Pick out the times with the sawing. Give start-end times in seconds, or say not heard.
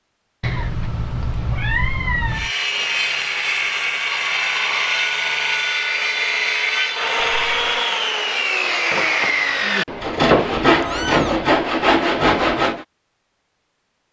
2.2-12.8.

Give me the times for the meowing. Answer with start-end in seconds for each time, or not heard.
0.4-2.5, 7.3-7.8, 10.7-11.4.